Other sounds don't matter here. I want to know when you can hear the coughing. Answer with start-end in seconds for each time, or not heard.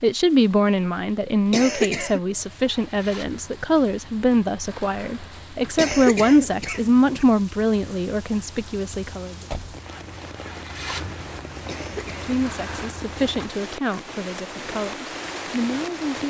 1.5-2.2, 5.8-7.2, 11.7-12.2.